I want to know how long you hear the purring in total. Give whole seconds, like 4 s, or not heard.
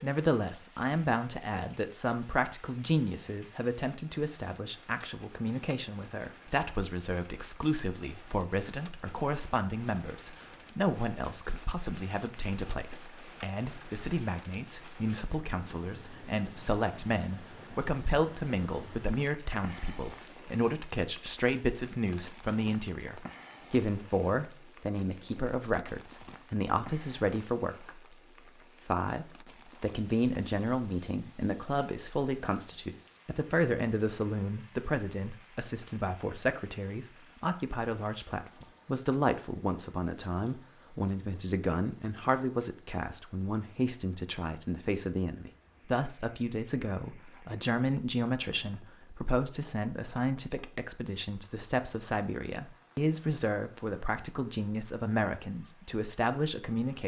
not heard.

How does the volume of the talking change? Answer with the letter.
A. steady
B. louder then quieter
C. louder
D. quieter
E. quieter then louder
A.